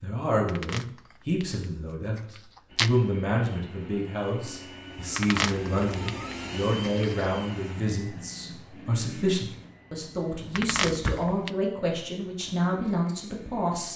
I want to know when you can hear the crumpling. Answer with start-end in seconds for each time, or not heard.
0.5-1.4, 2.1-2.9, 5.2-7.3, 10.6-11.5.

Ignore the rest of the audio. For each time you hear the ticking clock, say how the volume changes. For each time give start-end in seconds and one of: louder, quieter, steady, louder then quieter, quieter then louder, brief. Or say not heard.
not heard.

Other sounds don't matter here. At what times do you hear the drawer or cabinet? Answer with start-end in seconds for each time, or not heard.
10.2-11.3.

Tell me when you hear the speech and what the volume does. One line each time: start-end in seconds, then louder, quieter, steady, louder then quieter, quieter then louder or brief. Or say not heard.
0.0-13.9 steady.